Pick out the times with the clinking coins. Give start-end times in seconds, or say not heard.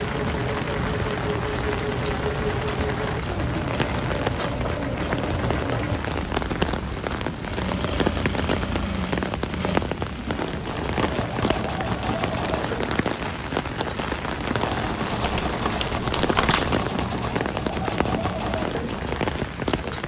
not heard.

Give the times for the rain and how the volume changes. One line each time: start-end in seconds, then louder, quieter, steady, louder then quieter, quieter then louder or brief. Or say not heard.
0.0-20.0 steady.